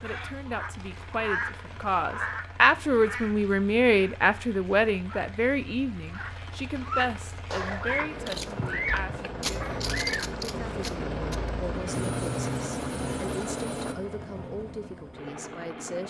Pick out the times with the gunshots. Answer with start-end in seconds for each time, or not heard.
7.5-11.5.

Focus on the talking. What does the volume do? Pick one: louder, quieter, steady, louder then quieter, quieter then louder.
quieter.